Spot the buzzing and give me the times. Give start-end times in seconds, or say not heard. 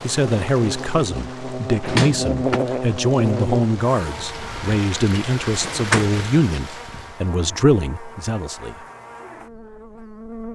0.1-10.4.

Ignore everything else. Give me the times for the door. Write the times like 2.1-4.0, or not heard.
1.8-2.6, 5.5-6.6.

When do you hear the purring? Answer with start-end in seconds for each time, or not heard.
not heard.